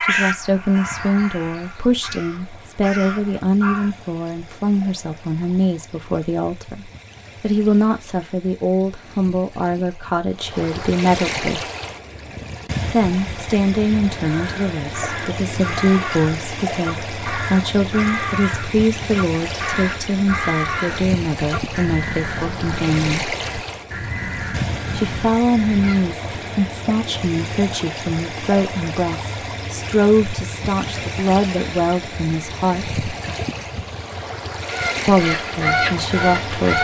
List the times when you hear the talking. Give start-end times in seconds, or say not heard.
0.0-11.6, 12.9-23.4, 24.9-33.0, 35.0-36.7.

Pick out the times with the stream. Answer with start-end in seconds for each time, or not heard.
0.2-36.7.